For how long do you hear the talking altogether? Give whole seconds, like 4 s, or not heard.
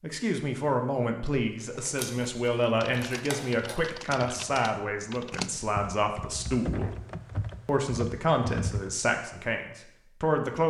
10 s.